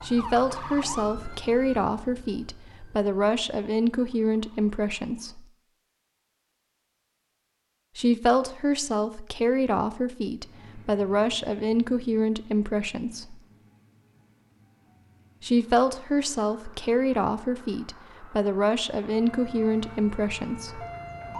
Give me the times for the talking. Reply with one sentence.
The talking can be heard from 0.0 to 5.5 s, from 8.0 to 13.4 s and from 15.4 to 20.9 s.